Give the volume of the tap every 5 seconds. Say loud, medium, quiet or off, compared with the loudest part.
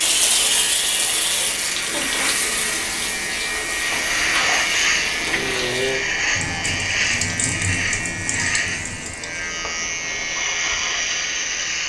loud, medium, off.